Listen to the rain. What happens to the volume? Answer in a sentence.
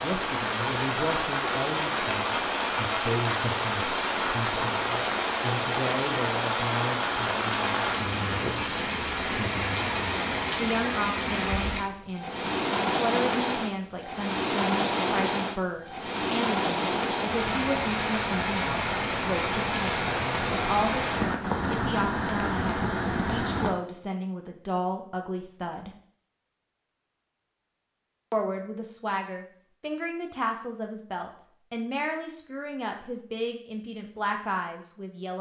The volume of the rain stays about the same.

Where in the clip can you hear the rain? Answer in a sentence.
The rain can be heard from 0.0 to 23.8 s.